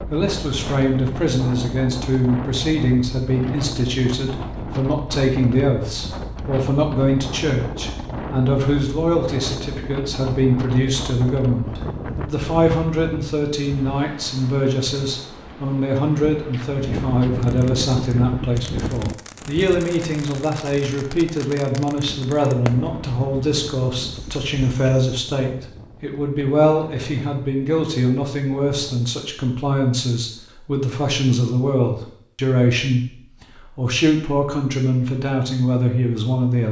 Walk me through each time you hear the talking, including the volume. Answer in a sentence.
The talking can be heard from 0.1 to 36.6 s, at a steady volume.